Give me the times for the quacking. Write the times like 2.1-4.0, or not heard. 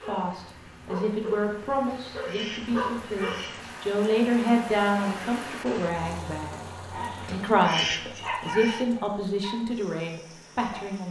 2.1-3.8, 7.2-8.8.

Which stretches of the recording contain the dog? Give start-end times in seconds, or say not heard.
0.0-3.8, 6.9-11.0.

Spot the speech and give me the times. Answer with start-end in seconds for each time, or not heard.
0.0-6.7, 7.2-11.0.